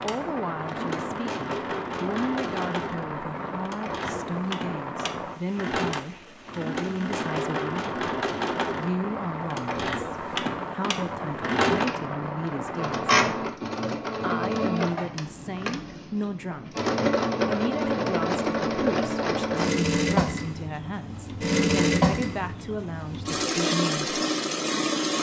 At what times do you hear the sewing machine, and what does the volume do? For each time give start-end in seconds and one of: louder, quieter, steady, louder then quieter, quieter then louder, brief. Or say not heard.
0.0-25.1 louder.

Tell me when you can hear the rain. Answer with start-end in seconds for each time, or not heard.
0.0-13.6.